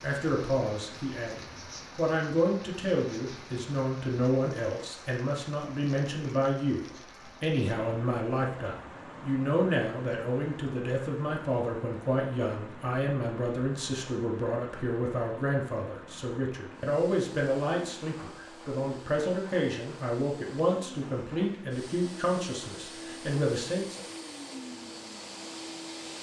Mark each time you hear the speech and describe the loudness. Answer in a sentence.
The speech can be heard from 0.0 to 24.0 s, at a steady volume.